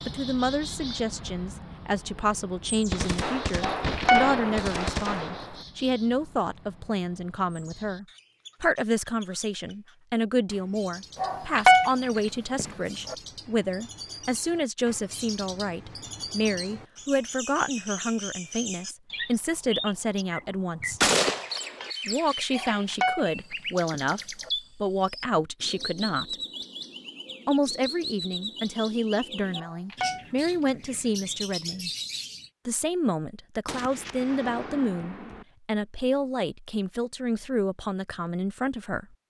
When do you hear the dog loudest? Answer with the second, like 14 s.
12 s.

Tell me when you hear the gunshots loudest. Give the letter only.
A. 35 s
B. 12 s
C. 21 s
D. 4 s
C.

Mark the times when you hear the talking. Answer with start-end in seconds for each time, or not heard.
0.1-21.0, 22.1-26.4, 27.4-31.9, 32.6-39.0.